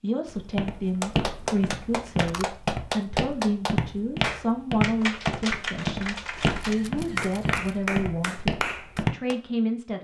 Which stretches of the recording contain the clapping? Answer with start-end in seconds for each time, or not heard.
1.0-9.3.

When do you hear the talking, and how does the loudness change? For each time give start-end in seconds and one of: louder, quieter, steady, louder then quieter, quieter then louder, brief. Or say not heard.
0.0-9.9 steady.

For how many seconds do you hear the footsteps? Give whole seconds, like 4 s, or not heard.
9 s.